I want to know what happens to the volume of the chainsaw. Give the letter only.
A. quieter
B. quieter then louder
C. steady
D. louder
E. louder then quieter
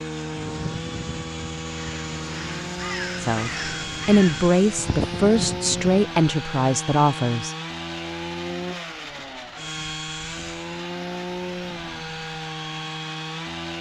C.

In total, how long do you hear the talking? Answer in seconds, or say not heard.
4 s.